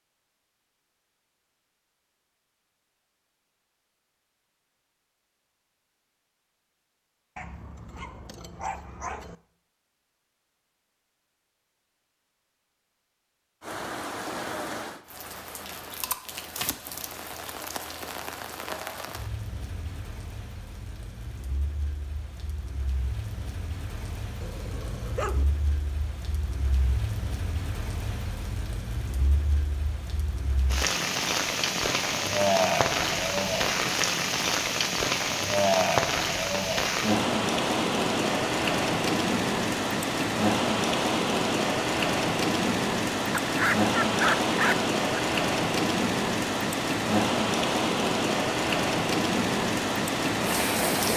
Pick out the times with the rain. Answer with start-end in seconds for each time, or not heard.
13.6-51.1.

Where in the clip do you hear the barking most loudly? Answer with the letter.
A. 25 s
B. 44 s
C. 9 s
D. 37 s
B.